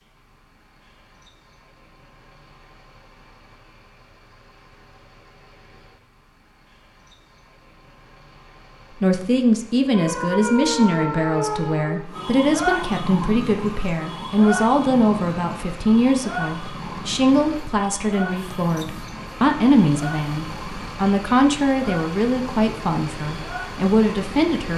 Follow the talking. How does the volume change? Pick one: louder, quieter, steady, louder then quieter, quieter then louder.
steady.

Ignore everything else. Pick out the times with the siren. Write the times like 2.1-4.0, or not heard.
9.9-24.6.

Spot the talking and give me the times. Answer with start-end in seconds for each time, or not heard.
9.0-24.7.